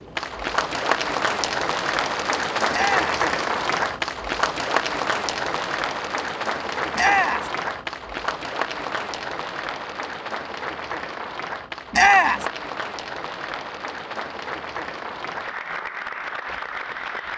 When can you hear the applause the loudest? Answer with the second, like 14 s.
3 s.